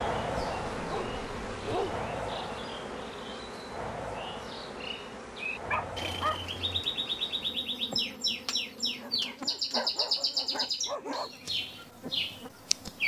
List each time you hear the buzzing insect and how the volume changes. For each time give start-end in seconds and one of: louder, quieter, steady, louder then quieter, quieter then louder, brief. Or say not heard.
0.0-12.9 quieter.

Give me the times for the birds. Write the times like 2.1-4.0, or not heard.
0.0-13.0.